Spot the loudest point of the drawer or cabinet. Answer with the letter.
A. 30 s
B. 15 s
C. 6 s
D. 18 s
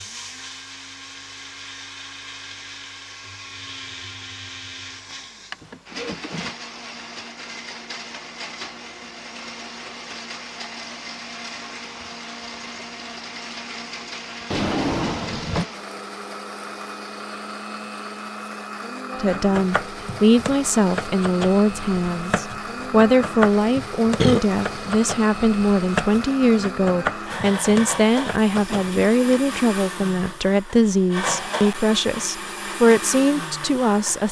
B.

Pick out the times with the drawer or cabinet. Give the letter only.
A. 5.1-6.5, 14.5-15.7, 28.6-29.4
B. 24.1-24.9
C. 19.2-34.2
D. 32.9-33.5
A.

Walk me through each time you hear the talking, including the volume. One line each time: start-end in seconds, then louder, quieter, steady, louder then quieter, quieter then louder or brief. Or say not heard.
19.2-34.2 steady.